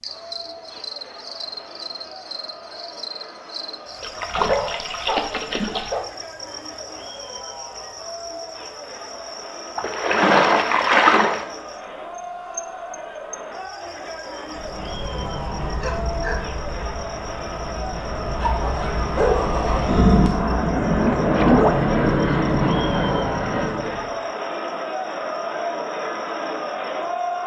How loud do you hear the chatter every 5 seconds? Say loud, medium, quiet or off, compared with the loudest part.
quiet, medium, medium, medium, loud, loud.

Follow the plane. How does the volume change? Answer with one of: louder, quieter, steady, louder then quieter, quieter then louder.
louder.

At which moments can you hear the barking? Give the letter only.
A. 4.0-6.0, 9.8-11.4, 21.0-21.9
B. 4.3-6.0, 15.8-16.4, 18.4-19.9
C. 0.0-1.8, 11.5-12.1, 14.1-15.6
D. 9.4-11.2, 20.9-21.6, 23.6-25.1
B.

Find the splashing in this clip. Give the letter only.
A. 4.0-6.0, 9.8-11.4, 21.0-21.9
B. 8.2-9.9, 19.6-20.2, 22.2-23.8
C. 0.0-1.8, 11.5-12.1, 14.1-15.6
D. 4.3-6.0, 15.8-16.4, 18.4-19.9
A.